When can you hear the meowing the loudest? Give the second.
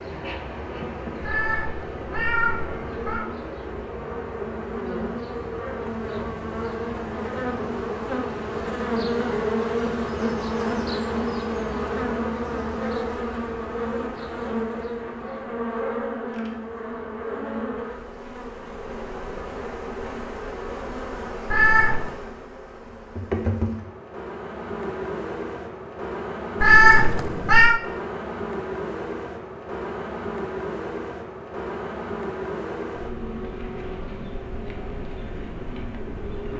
27 s.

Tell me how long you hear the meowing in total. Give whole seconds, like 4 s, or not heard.
4 s.